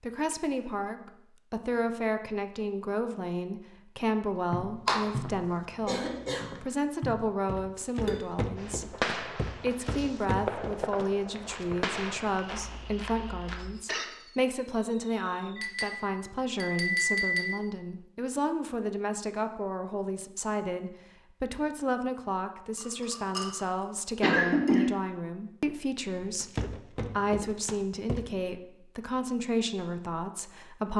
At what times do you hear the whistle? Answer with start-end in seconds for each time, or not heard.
not heard.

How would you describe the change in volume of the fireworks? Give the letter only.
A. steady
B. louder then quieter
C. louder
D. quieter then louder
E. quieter
E.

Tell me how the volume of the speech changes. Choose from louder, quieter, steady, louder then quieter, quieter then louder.
steady.